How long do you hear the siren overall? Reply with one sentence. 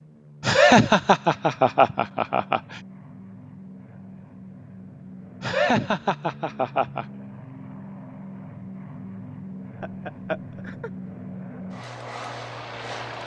You can't hear the siren here.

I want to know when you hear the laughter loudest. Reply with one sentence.
The volume of the laughter peaks at 1 second.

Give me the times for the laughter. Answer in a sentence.
You can hear the laughter from 0.4 to 2.8 s, from 5.4 to 7.0 s and from 9.8 to 10.9 s.